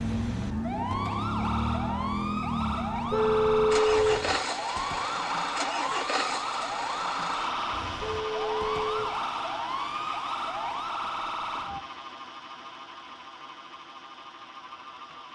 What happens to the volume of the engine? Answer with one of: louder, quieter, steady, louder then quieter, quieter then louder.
quieter.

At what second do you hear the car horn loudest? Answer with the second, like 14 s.
4 s.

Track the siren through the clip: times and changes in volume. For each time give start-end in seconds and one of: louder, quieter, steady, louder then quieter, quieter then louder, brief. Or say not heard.
0.0-11.8 steady.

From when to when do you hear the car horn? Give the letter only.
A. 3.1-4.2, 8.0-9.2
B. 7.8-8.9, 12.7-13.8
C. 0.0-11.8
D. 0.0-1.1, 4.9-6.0
A.